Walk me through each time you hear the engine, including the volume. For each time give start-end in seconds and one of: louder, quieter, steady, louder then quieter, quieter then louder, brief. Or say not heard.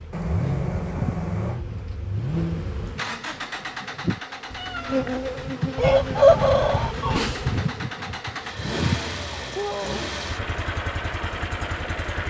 0.0-12.2 quieter then louder.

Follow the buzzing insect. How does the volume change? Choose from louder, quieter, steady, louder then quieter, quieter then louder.
quieter then louder.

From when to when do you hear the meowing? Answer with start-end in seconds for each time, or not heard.
0.1-1.6, 4.5-5.5, 9.4-10.0.